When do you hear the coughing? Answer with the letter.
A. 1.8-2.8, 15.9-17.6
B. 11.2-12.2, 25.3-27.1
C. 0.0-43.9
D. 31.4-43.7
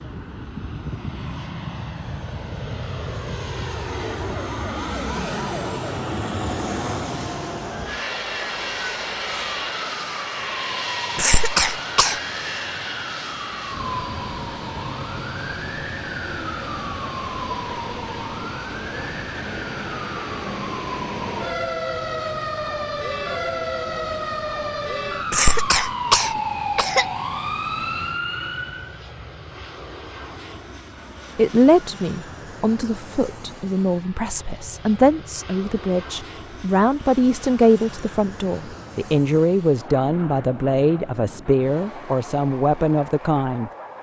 B.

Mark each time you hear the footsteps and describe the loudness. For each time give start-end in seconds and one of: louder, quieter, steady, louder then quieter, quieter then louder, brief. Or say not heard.
not heard.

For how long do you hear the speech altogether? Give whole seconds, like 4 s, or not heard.
12 s.